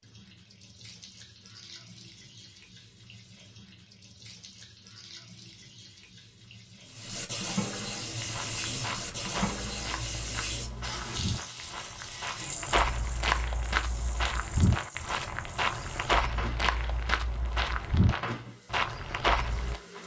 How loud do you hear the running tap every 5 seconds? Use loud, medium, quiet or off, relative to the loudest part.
quiet, loud, loud, medium.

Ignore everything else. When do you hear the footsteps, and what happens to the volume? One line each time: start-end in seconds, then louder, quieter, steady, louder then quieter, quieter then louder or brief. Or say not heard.
8.2-19.8 louder.